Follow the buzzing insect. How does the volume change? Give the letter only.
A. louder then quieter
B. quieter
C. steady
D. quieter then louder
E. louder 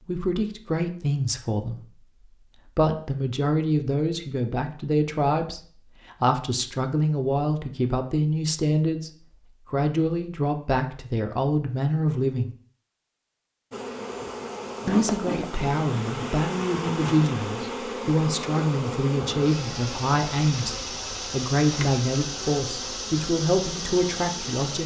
C.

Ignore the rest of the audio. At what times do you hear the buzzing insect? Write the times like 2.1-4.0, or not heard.
13.7-24.8.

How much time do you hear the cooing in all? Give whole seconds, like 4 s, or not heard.
not heard.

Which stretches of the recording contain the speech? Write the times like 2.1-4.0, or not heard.
0.1-2.0, 2.8-9.1, 9.7-12.6, 14.8-24.8.